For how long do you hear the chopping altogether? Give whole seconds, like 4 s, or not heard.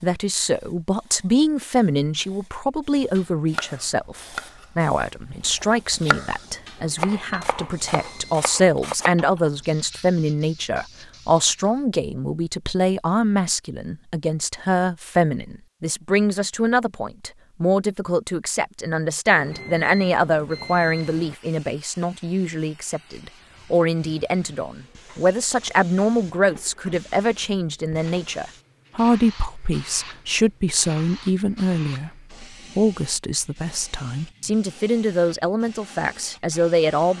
6 s.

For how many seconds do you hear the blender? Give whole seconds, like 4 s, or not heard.
not heard.